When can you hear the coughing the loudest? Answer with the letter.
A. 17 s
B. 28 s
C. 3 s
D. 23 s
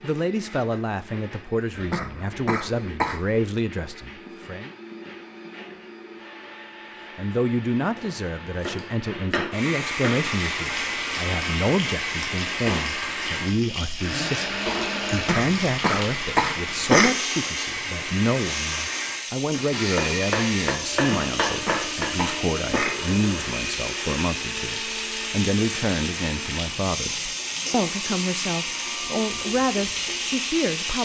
A.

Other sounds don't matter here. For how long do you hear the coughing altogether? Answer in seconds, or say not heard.
6 s.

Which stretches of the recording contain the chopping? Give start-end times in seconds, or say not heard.
8.0-10.2, 19.9-22.1.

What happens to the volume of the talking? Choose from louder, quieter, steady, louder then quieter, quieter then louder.
steady.